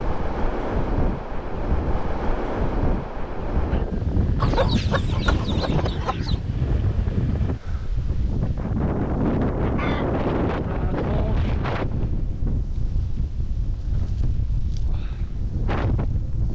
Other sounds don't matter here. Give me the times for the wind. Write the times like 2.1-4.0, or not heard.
0.0-16.5.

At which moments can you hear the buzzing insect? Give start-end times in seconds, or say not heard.
not heard.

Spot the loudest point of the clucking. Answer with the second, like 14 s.
5 s.